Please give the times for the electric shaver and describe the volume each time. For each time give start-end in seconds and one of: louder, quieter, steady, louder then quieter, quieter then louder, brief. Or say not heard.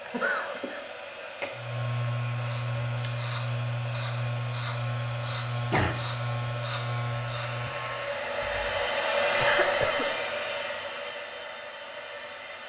1.6-8.2 steady.